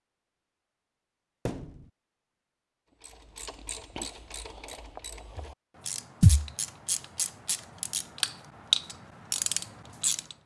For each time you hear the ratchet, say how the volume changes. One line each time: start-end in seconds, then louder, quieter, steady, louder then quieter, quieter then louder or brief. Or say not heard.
3.0-10.4 louder.